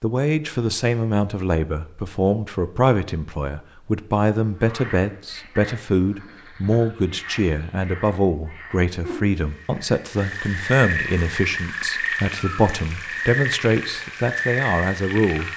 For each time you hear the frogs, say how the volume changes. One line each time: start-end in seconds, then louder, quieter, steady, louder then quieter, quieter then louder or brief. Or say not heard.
4.5-15.5 louder.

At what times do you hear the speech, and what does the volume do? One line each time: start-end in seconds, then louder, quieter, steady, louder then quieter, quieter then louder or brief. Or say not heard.
0.0-15.5 steady.